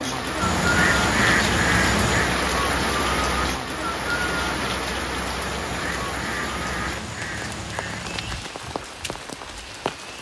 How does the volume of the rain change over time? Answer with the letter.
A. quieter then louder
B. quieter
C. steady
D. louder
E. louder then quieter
B.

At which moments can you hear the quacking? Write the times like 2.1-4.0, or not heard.
0.4-2.4, 5.5-8.4.